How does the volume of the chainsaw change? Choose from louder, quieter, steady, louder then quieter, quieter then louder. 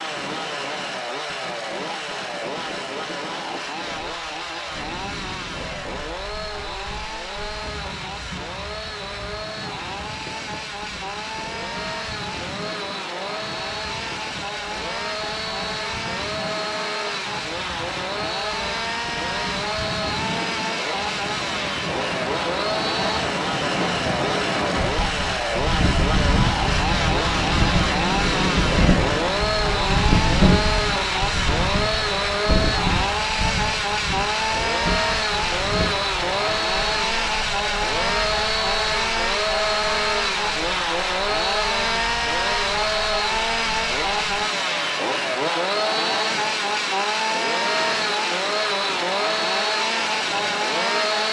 louder.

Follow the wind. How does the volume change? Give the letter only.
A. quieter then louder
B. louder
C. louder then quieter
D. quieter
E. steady
C.